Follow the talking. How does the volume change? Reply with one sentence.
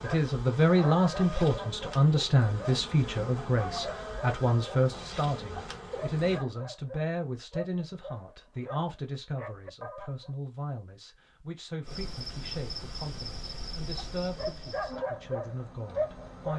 The loudness of the talking goes down.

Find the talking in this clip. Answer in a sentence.
You can hear the talking from 0.0 to 16.5 s.